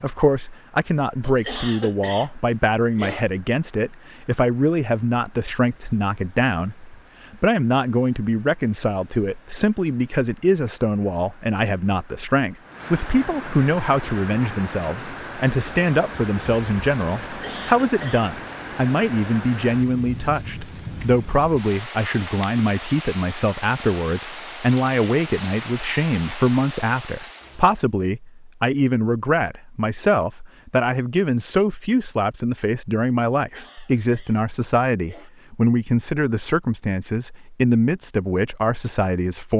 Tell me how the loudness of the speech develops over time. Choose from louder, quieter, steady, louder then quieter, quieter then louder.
steady.